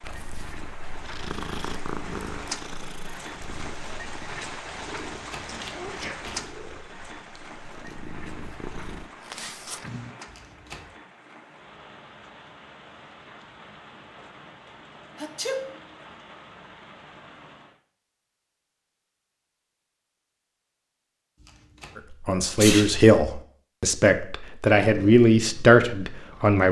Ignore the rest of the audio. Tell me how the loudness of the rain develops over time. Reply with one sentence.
The loudness of the rain goes down.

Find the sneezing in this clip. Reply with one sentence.
You can hear the sneezing from 5.7 to 6.3 s, from 15.2 to 15.7 s and from 22.6 to 23.1 s.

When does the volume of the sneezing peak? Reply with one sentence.
The loudest moment of the sneezing is at 23 seconds.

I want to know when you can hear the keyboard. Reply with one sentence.
You can't hear the keyboard here.